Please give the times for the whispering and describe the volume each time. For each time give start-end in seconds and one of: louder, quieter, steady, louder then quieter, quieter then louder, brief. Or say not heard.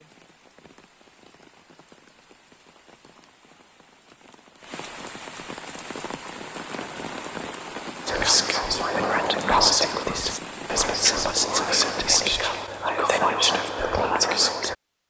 8.1-14.8 steady.